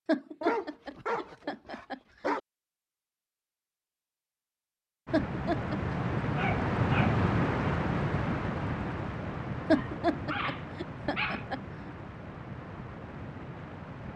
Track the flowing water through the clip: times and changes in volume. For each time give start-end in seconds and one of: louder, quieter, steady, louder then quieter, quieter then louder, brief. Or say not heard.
5.0-14.1 quieter.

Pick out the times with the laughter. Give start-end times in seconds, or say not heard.
0.1-2.4, 5.1-6.0, 9.7-11.6.